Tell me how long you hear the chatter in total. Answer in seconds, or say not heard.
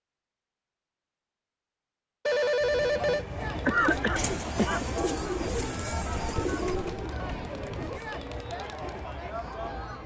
7 s.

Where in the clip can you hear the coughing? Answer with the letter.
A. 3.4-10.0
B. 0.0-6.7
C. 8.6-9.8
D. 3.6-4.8
D.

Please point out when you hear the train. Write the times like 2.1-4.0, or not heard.
2.6-10.0.